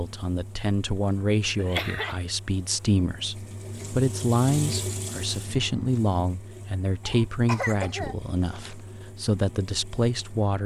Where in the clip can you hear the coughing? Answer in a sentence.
The coughing can be heard from 1.6 to 2.2 s and from 7.0 to 8.8 s.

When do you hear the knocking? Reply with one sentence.
The knocking can't be heard in this clip.